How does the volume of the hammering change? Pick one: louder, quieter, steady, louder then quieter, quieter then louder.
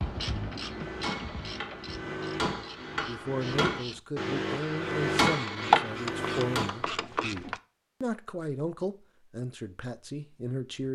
louder.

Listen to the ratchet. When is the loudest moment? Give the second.
6 s.